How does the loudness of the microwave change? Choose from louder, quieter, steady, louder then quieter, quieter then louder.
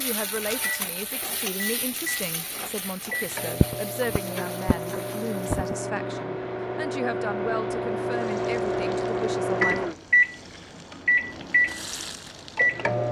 louder.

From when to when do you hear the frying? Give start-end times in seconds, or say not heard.
0.0-5.8, 8.1-13.0.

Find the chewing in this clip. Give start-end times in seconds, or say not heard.
not heard.